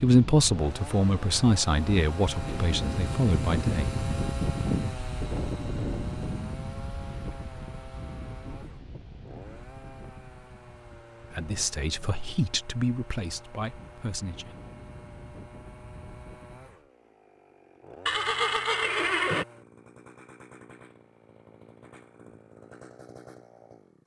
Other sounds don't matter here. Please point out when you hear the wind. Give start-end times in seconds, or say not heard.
0.0-16.9.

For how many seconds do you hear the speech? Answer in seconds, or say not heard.
7 s.